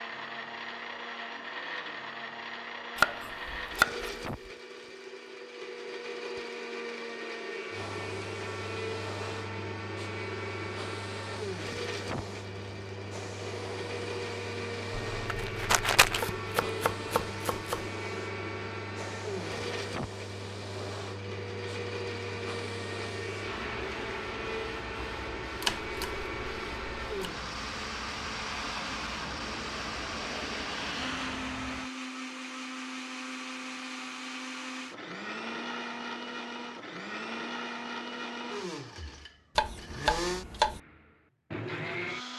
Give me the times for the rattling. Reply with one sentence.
You can hear the rattling from 14.9 to 16.2 s.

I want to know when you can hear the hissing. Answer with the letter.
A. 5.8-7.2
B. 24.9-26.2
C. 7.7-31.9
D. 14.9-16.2
C.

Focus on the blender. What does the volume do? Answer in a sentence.
The volume of the blender stays about the same.